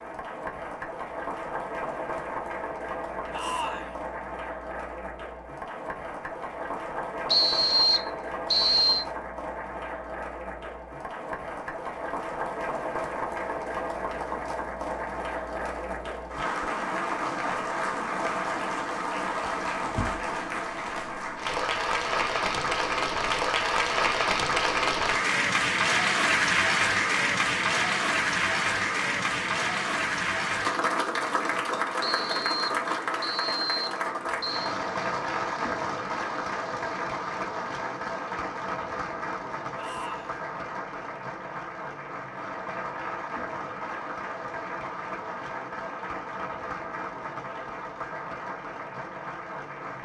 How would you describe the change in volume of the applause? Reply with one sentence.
The loudness of the applause goes up, then down.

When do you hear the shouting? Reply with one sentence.
You can hear the shouting from 3.3 to 4.0 s and from 39.8 to 40.4 s.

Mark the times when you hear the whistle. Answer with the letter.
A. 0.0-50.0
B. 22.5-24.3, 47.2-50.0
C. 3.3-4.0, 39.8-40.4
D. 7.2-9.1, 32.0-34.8
D.